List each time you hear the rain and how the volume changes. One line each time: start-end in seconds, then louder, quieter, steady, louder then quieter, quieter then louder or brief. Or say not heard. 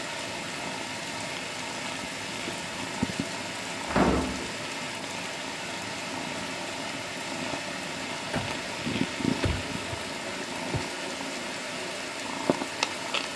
0.0-13.3 steady.